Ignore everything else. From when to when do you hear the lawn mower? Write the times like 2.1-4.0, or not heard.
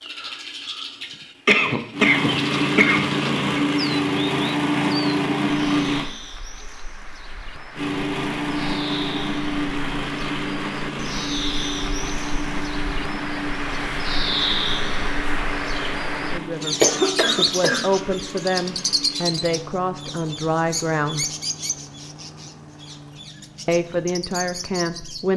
1.9-6.1, 7.8-25.3.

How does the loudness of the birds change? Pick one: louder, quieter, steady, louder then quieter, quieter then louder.
louder then quieter.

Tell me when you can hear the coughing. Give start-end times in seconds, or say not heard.
1.0-3.6, 16.8-18.1.